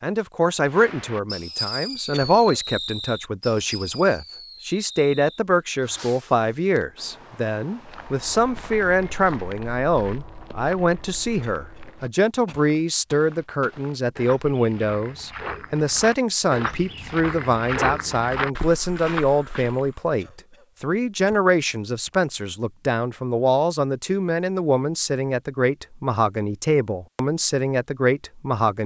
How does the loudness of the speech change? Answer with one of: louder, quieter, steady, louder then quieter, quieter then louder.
steady.